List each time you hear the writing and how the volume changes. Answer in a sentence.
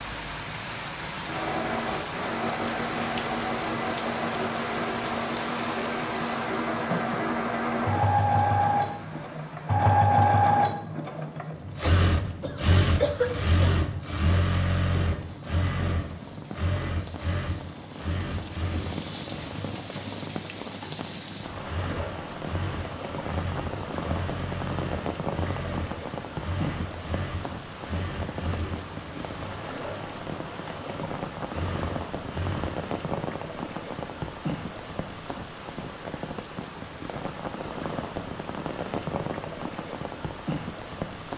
You can't hear the writing here.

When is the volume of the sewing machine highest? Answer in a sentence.
The loudest moment of the sewing machine is at 10 seconds.